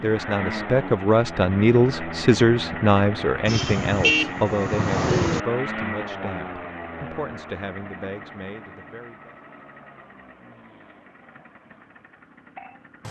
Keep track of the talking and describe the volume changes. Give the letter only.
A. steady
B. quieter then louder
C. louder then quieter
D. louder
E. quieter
E.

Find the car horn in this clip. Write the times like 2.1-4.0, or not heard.
3.5-5.4.